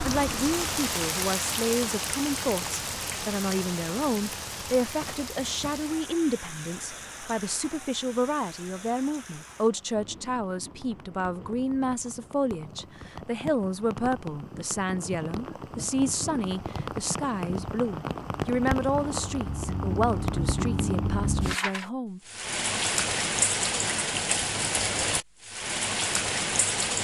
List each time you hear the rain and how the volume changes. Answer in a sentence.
The rain can be heard from 0.0 to 26.9 s, getting quieter then louder.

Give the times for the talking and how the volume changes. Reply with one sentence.
The talking can be heard from 0.1 to 22.2 s, at a steady volume.